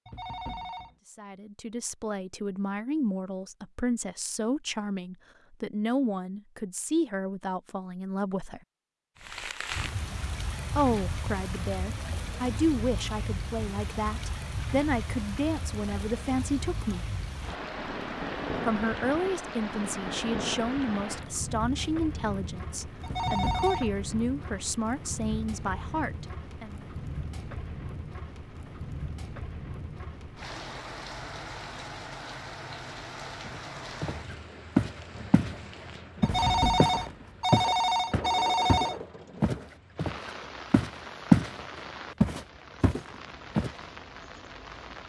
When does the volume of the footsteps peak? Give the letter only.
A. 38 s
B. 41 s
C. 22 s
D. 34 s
B.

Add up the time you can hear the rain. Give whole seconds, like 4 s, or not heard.
36 s.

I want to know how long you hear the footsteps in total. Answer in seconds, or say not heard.
9 s.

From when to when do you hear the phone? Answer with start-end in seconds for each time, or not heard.
0.1-0.9, 23.0-23.9, 36.2-39.0.